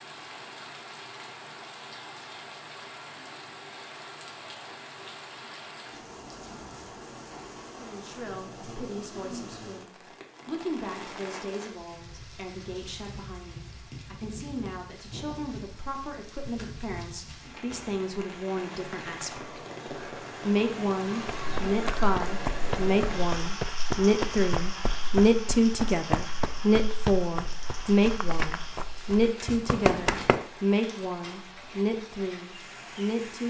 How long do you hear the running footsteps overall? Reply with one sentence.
You can hear the running footsteps for 9 seconds altogether.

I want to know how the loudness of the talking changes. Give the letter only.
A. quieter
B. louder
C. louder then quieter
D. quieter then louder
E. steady
B.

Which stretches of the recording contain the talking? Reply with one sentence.
The talking can be heard from 7.8 to 19.6 s and from 20.4 to 33.4 s.